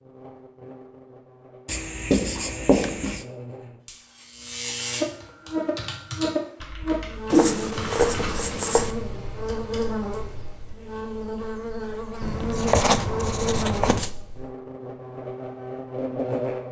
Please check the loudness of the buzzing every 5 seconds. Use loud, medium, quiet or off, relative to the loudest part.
medium, loud, loud, loud.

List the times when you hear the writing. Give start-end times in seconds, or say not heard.
1.6-3.2, 7.3-8.9, 12.2-14.1.